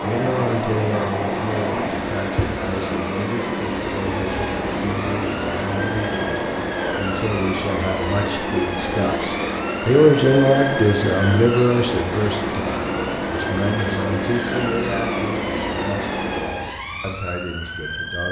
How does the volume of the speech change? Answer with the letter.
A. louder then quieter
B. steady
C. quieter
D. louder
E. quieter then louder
A.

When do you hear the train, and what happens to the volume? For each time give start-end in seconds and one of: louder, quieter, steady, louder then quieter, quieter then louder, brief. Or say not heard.
0.0-16.8 steady.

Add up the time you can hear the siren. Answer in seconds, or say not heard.
18 s.